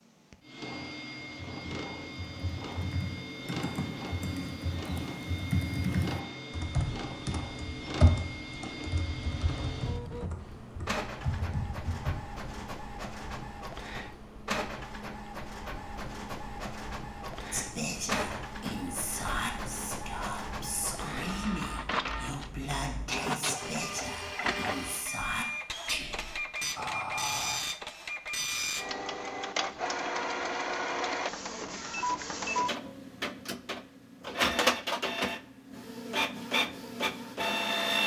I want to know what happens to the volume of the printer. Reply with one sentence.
The loudness of the printer goes up.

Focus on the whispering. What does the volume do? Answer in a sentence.
The loudness of the whispering stays about the same.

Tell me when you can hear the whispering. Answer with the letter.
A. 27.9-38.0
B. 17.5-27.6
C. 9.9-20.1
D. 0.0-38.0
B.